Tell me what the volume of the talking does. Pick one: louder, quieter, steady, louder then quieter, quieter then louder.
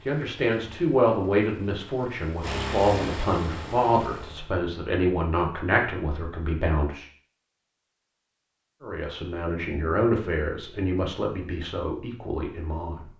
quieter.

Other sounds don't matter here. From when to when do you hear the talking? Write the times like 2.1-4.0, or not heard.
0.1-7.0, 8.8-13.1.